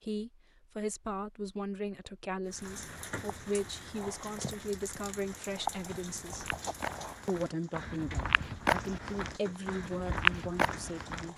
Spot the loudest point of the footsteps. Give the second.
10 s.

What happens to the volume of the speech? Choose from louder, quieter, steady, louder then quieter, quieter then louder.
steady.